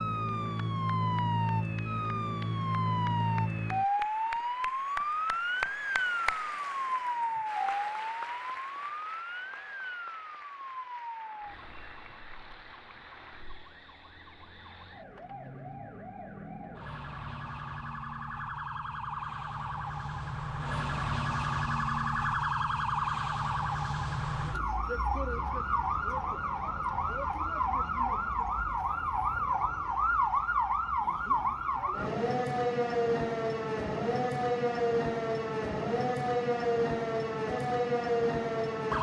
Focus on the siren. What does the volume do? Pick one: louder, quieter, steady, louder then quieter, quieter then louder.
quieter then louder.